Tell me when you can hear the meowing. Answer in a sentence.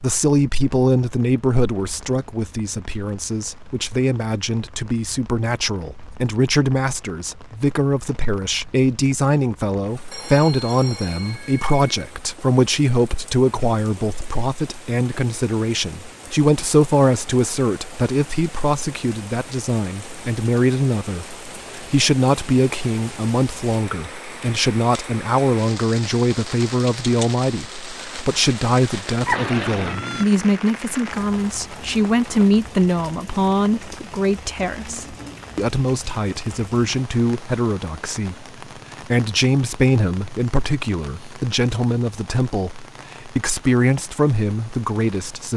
The meowing can be heard from 29.2 to 30.2 s.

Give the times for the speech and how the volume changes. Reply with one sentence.
You can hear the speech from 0.0 to 45.5 s, at a steady volume.